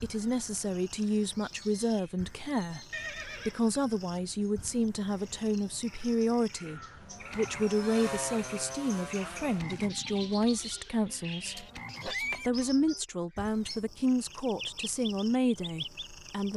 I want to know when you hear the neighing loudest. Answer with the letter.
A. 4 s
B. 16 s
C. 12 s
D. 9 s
C.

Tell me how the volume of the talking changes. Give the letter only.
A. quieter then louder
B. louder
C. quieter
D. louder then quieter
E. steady
E.